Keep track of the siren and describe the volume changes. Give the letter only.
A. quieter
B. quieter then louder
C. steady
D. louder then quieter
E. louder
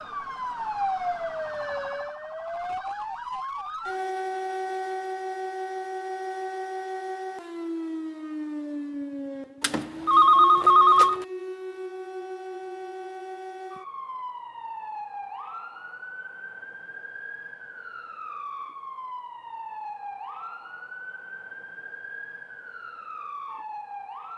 A.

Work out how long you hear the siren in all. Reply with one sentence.
You can hear the siren for 24 seconds altogether.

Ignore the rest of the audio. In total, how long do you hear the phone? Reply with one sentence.
You can hear the phone for 2 seconds altogether.